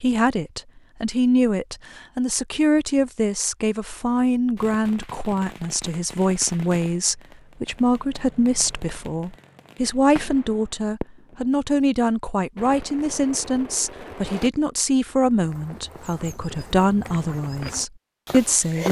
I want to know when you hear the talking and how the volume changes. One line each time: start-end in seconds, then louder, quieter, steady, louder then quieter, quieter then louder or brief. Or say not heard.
0.0-18.8 steady.